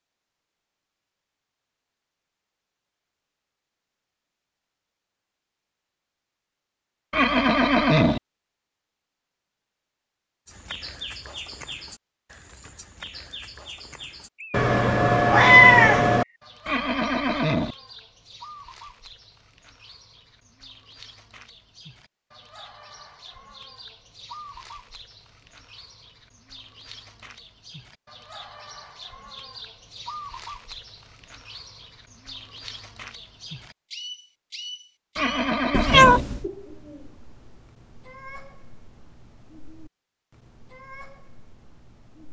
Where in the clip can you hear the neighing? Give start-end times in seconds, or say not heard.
7.1-8.2, 16.6-17.8, 35.1-36.2.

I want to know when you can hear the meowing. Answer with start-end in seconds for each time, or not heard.
14.5-16.2, 35.7-36.5.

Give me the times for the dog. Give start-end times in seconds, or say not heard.
not heard.